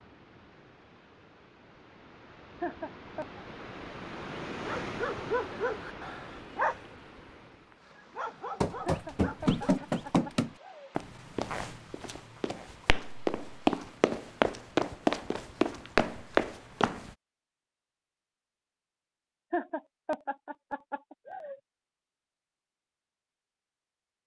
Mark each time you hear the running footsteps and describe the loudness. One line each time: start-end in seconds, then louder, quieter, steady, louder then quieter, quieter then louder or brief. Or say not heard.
8.6-17.1 quieter then louder.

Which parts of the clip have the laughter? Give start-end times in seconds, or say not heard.
2.6-3.4, 8.8-10.9, 19.5-21.6.